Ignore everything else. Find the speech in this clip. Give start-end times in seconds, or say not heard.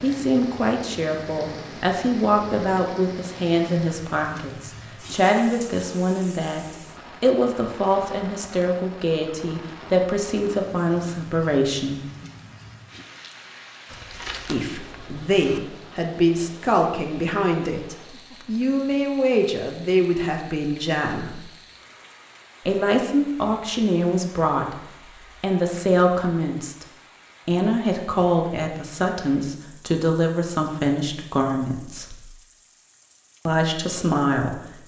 0.0-12.0, 14.4-21.4, 22.6-24.8, 25.4-26.9, 27.4-32.2, 33.5-34.8.